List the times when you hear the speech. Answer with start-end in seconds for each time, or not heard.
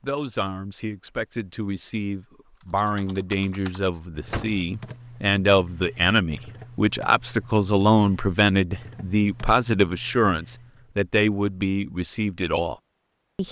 0.0-13.4.